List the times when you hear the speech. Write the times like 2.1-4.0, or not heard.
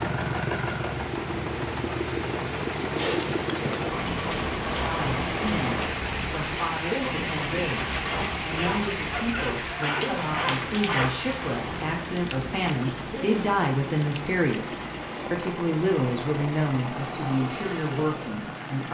4.8-14.7, 15.3-18.9.